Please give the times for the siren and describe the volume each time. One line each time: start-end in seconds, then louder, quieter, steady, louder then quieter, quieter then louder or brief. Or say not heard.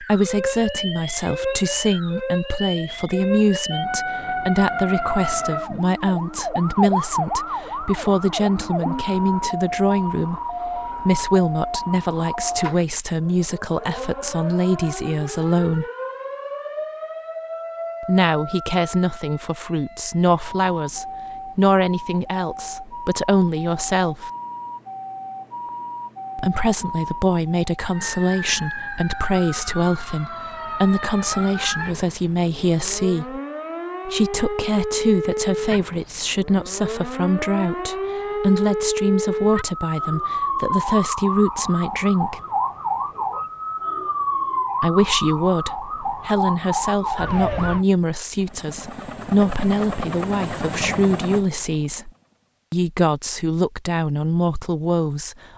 0.0-47.9 quieter then louder.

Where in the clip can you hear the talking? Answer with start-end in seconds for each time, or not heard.
0.0-15.8, 18.1-24.3, 26.4-33.4, 34.0-42.4, 44.8-52.1, 52.7-55.4.